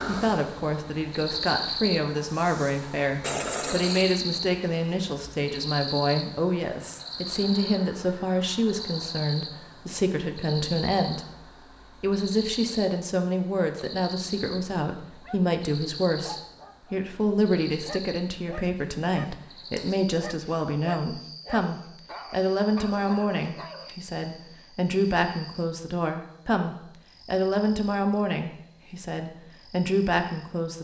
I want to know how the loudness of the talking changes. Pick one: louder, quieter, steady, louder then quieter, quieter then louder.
steady.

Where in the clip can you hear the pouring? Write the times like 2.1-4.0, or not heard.
3.2-4.2.